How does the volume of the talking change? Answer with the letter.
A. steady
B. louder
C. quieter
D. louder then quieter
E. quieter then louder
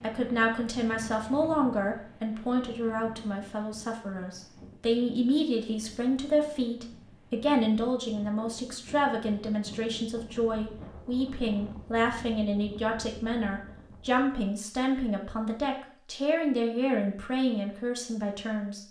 A.